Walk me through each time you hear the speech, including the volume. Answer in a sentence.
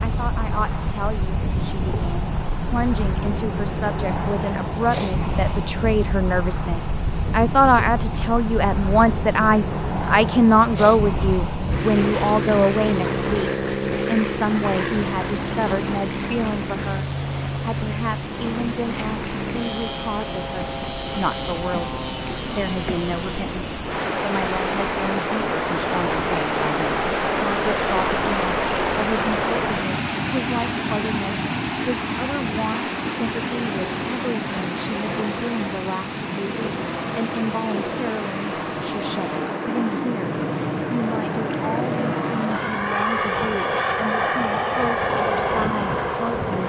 You can hear the speech from 0.0 to 46.6 s, getting quieter.